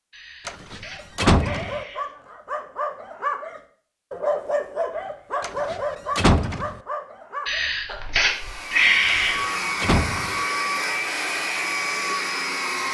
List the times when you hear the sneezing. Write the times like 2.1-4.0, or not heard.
0.1-2.1, 7.5-9.4.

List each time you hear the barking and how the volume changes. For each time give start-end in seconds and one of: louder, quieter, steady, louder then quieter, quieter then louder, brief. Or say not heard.
0.8-8.4 louder then quieter.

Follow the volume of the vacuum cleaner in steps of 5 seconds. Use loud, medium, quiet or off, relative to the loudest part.
off, loud, loud.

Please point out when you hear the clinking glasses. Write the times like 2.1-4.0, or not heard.
not heard.